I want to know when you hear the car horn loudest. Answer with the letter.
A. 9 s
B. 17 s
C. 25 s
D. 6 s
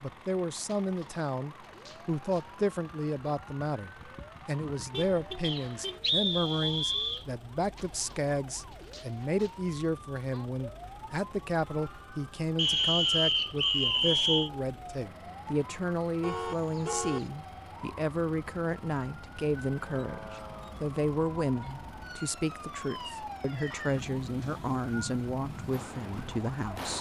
B.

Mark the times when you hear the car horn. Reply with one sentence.
You can hear the car horn from 4.9 to 6.0 s and from 16.2 to 17.3 s.